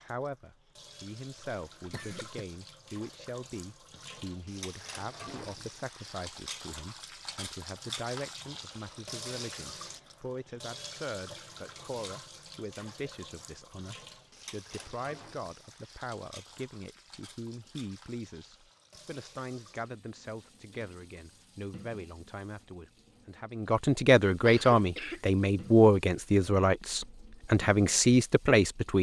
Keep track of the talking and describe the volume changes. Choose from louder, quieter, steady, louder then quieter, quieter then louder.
louder.